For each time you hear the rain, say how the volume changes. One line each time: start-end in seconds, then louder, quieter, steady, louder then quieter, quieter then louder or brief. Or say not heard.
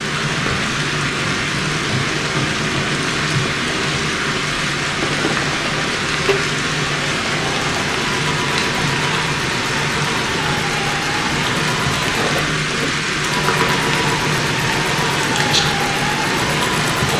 0.0-17.1 steady.